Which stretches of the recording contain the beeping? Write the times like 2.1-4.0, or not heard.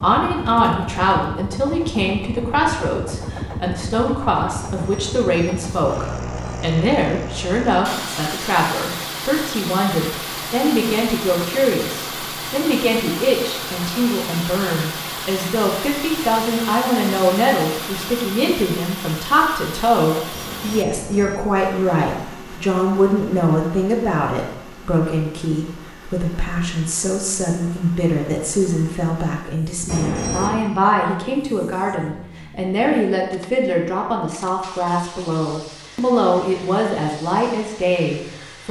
4.5-6.7, 20.3-21.4, 29.9-30.6.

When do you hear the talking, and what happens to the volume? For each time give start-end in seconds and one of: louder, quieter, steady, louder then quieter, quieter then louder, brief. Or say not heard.
0.0-38.6 steady.